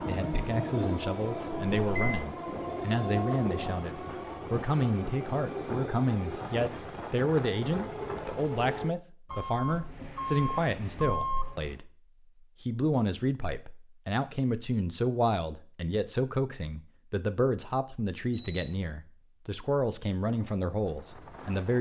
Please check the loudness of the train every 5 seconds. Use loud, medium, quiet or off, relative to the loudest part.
loud, loud, off, off, quiet.